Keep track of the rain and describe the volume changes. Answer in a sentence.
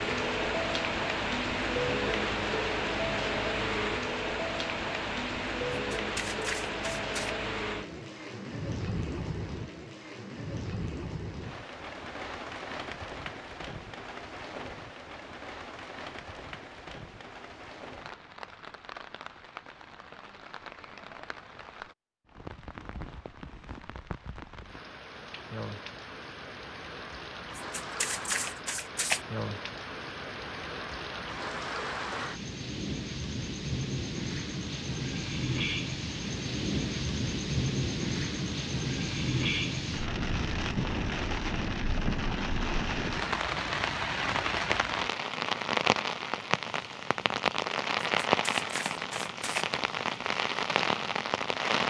The loudness of the rain goes down, then up.